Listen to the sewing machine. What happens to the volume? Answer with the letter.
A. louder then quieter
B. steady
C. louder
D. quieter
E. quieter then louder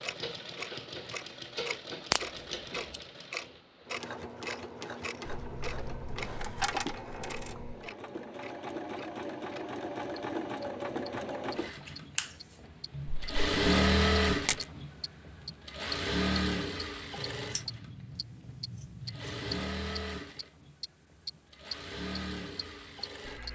A.